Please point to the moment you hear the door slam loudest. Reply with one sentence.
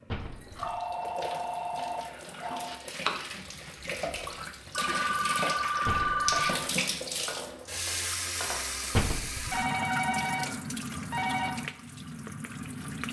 The loudest moment of the door slam is at 9 seconds.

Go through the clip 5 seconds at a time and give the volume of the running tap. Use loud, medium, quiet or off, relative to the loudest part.
medium, loud, loud.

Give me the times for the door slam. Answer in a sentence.
The door slam can be heard from 0.1 to 0.8 s, from 5.8 to 6.3 s and from 8.9 to 9.6 s.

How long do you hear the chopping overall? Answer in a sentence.
You can hear the chopping for 7 seconds altogether.